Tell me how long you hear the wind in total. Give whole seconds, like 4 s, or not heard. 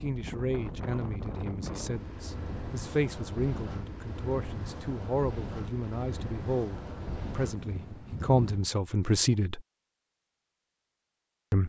9 s.